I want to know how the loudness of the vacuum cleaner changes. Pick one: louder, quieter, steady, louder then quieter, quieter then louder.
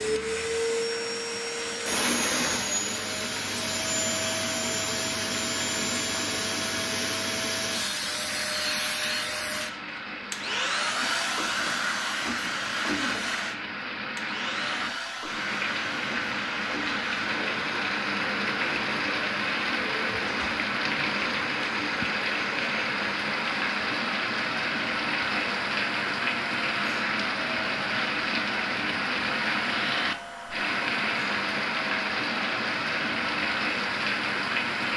quieter.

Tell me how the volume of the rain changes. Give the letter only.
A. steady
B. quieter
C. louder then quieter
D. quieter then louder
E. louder
E.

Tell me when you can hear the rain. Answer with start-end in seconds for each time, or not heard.
0.0-34.9.